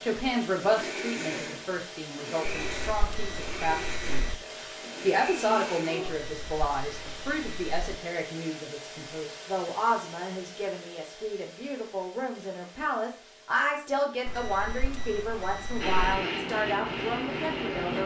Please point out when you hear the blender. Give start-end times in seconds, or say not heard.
0.0-6.2, 15.8-18.0.